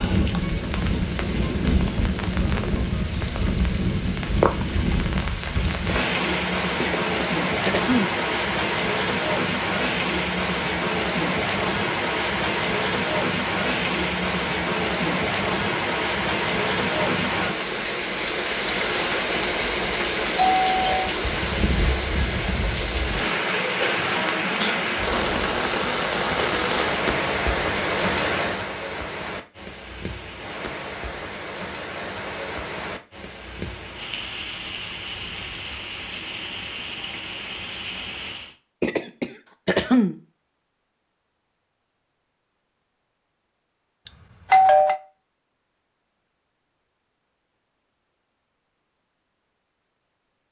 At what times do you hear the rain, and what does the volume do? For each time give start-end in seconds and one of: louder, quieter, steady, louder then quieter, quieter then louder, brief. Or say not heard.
0.0-38.5 quieter.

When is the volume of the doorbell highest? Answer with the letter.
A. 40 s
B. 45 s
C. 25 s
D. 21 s
B.